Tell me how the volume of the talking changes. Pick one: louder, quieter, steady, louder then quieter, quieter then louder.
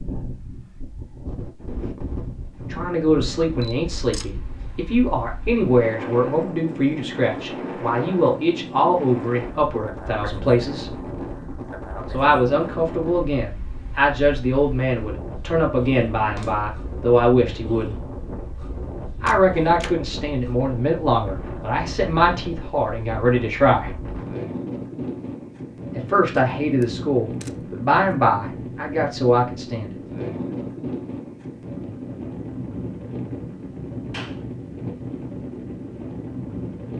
steady.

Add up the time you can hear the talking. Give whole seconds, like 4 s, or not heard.
23 s.